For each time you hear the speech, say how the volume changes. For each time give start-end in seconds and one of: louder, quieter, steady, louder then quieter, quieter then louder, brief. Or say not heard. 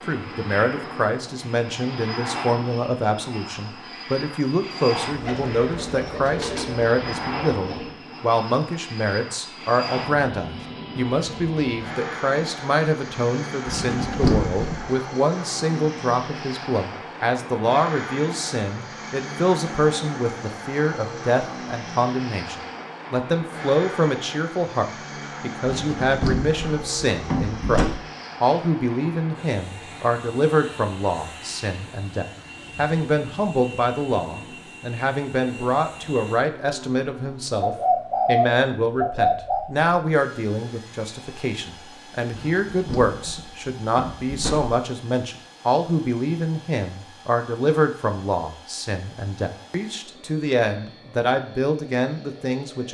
0.1-52.8 steady.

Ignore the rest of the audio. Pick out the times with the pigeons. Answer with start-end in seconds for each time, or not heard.
5.0-7.9, 37.6-39.6.